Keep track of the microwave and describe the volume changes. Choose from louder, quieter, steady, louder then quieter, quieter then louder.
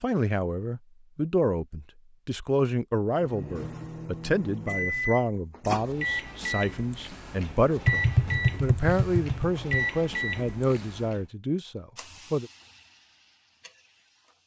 steady.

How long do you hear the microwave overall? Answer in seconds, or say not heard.
8 s.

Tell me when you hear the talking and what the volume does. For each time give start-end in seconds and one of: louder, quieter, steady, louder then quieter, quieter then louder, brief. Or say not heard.
0.0-12.5 steady.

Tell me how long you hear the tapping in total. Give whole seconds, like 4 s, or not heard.
2 s.